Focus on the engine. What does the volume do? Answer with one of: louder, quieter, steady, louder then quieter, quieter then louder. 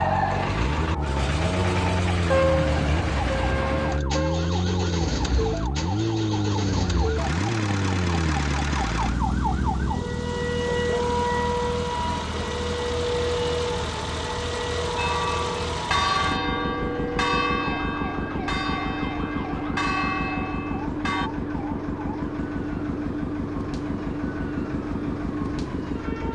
steady.